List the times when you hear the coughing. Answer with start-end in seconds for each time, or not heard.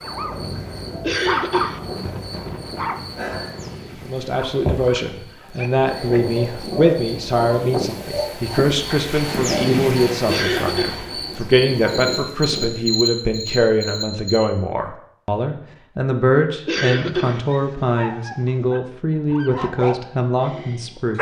1.0-1.8, 10.2-11.1, 16.6-17.4.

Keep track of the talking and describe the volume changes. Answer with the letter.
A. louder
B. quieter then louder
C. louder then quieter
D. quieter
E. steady
E.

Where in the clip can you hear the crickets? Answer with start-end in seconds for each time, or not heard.
0.0-14.4.